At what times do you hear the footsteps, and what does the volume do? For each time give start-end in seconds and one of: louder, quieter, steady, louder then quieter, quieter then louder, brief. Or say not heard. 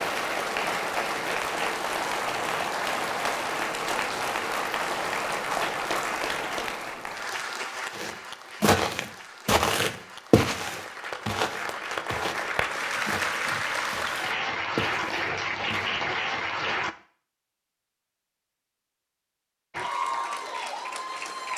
7.9-15.9 quieter.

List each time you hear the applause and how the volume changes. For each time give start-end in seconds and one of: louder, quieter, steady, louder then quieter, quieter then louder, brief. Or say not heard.
0.0-16.9 quieter then louder
19.7-21.5 brief.